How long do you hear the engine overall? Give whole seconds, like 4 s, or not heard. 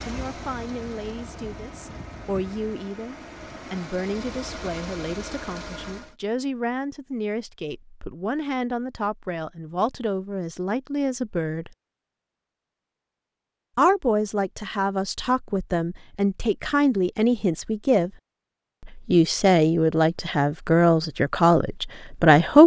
6 s.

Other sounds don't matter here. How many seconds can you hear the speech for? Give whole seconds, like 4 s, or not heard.
20 s.